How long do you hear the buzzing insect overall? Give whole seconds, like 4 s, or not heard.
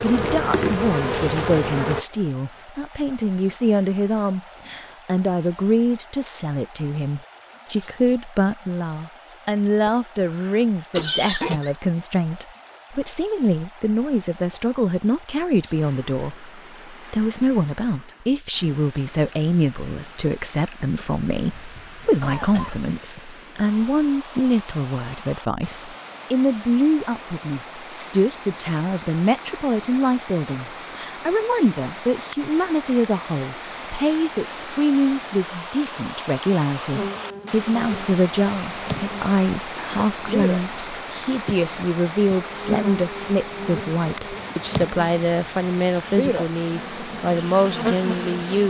14 s.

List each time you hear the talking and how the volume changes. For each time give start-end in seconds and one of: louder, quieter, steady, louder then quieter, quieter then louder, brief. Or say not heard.
0.0-48.6 steady.